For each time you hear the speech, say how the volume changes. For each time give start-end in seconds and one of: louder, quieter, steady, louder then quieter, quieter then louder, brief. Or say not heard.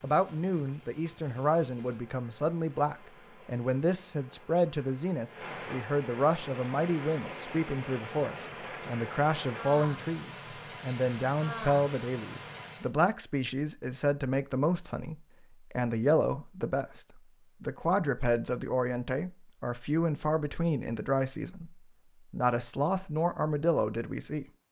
0.0-24.4 steady.